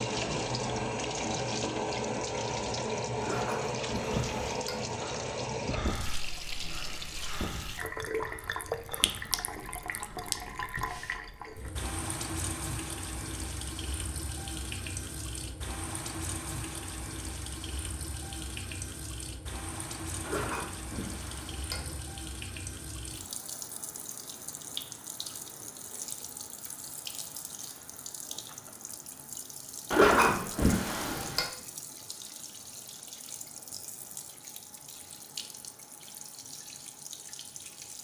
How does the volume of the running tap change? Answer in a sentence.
The loudness of the running tap goes down.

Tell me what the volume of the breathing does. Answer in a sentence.
The volume of the breathing goes up, then down.